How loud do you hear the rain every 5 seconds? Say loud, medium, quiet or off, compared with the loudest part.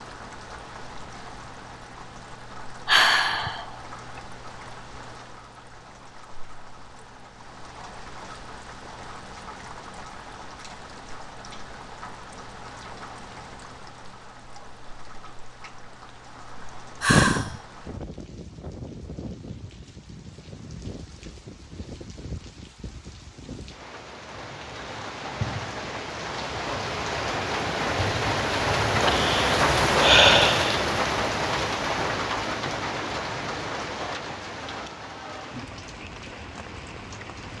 quiet, quiet, quiet, quiet, quiet, loud, loud, quiet.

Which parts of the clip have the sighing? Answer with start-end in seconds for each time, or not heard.
2.9-3.6, 17.0-17.6, 29.0-30.9.